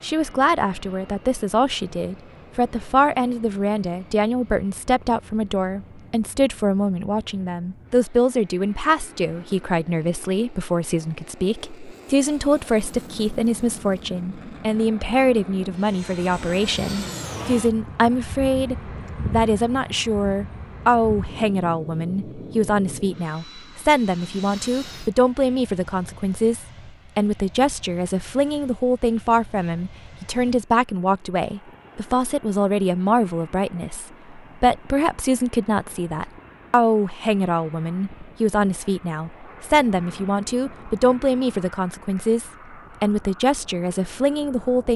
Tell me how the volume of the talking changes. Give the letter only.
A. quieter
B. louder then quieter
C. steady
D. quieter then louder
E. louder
C.